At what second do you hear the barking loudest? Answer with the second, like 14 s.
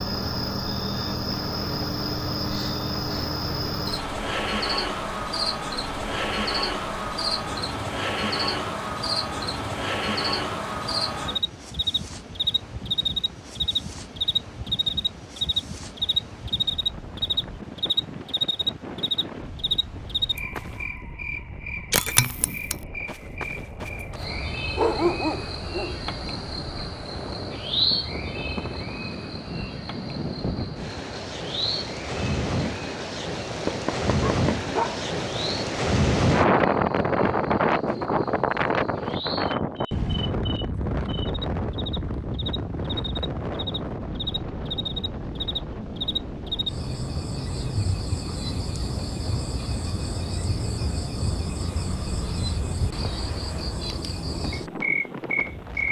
25 s.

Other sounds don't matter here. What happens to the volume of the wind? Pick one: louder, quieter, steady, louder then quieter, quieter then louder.
louder then quieter.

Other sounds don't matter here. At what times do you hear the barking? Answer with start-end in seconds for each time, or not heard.
24.8-26.1, 33.6-35.0.